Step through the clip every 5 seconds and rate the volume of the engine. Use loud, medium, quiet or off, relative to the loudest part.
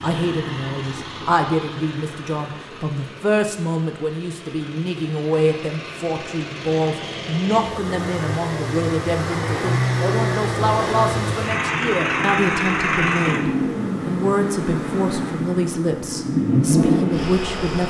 quiet, medium, loud, loud.